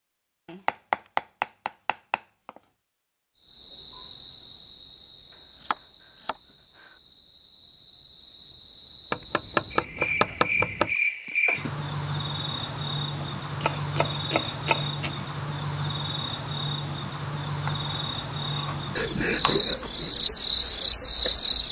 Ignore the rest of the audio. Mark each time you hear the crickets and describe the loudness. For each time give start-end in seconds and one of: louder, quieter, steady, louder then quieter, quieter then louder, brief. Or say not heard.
3.4-21.6 louder.